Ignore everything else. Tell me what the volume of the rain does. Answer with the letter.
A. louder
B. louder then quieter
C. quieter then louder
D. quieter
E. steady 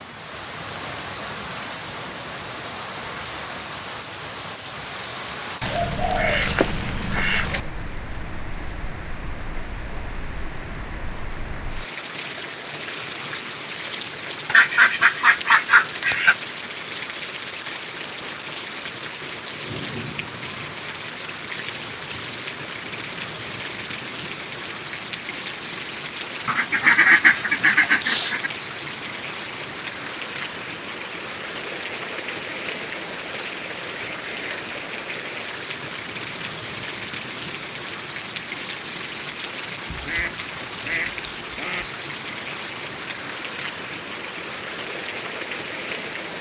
E.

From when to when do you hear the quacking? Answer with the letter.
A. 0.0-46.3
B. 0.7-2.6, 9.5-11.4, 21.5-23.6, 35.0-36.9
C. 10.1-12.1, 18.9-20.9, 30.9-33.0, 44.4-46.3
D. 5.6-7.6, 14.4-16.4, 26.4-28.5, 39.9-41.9
D.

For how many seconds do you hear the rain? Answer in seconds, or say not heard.
46 s.